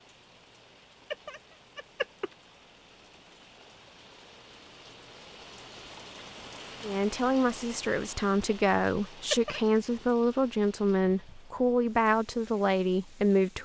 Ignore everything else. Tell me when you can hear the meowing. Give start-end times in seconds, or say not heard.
1.1-2.3, 9.3-9.8.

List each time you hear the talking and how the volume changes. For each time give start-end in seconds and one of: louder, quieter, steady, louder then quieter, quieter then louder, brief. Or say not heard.
6.8-13.5 steady.